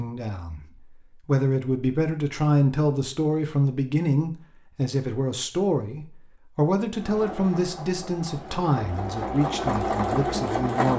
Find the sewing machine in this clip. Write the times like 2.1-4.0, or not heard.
7.0-10.9.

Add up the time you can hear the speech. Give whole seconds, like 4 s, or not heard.
10 s.